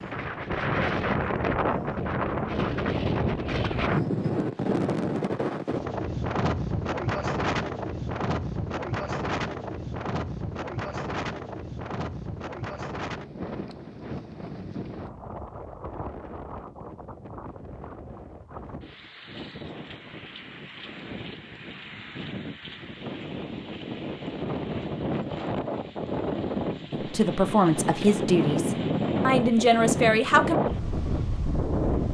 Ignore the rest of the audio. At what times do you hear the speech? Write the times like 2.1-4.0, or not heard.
26.9-30.6.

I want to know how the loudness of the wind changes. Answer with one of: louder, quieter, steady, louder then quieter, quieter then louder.
quieter then louder.